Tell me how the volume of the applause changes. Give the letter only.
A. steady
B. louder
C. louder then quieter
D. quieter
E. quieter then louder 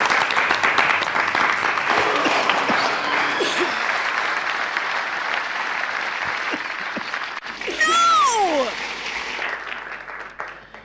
D.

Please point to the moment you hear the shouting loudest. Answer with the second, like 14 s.
8 s.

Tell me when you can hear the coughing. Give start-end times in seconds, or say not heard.
2.0-3.8, 6.2-8.0.